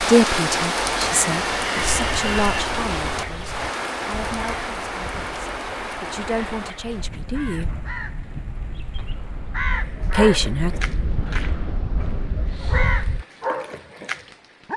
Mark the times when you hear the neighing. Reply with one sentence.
You can hear the neighing from 1.0 to 2.6 s.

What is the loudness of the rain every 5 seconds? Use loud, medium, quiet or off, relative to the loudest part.
loud, medium, quiet.